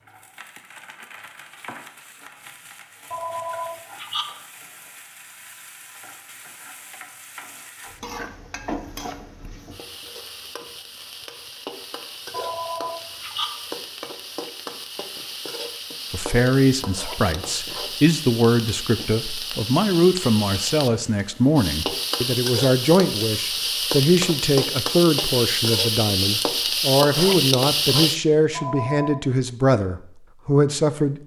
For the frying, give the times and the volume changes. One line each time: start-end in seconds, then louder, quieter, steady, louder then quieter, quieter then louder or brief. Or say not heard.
0.0-28.2 louder.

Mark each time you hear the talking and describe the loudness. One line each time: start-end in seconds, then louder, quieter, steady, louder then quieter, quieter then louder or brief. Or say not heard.
16.1-31.1 steady.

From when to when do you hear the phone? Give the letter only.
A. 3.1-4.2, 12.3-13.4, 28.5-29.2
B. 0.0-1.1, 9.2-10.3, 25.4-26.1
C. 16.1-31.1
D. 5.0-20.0
A.